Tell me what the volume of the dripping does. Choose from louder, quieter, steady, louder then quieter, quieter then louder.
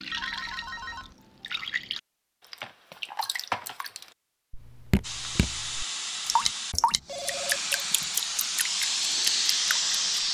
louder.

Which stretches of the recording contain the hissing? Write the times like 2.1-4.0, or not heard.
5.0-10.2.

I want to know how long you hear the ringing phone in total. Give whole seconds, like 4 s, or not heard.
2 s.